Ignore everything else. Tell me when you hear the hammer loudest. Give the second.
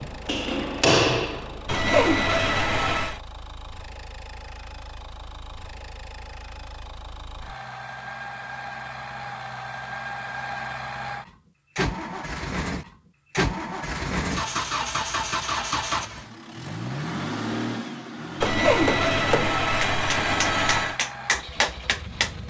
1 s.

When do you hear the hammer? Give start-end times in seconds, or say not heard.
0.0-2.1, 18.4-22.4.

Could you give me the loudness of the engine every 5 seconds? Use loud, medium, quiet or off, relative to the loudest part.
quiet, medium, loud, loud, medium.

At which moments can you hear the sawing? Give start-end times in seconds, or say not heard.
1.6-3.2, 18.4-21.0.